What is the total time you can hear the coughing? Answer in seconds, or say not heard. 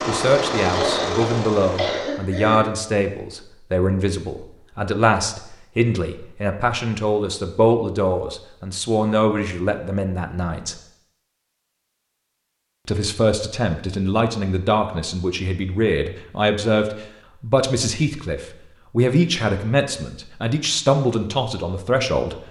2 s.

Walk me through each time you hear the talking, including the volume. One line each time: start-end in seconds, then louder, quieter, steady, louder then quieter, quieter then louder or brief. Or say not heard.
0.1-10.8 steady
12.8-22.4 steady.